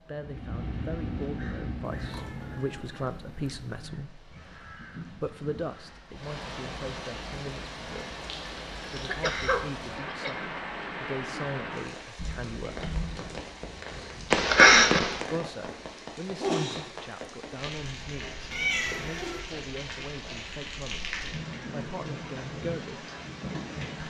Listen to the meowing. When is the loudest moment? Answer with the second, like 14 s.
19 s.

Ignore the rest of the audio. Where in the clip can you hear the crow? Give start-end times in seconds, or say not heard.
0.1-6.1.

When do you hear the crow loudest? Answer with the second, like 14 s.
1 s.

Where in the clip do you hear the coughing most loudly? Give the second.
15 s.